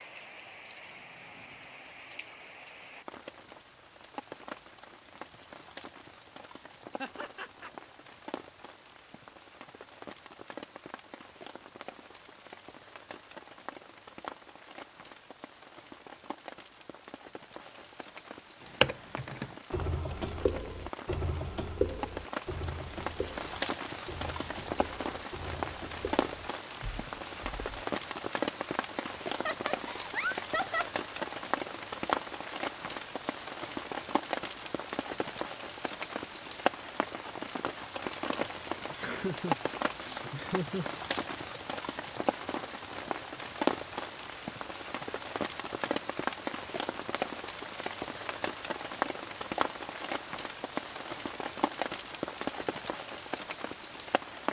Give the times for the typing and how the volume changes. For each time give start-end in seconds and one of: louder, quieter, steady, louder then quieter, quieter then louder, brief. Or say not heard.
18.6-27.9 quieter.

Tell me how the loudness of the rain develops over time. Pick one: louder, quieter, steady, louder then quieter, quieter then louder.
louder.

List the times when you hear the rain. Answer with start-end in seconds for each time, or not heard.
0.0-54.4.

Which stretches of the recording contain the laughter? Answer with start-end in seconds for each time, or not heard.
7.0-7.7, 29.3-30.9, 38.9-41.6.